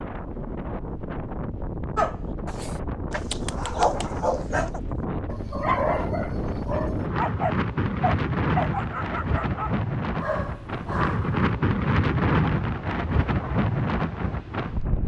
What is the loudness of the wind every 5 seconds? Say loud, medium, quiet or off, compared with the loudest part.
medium, loud, loud.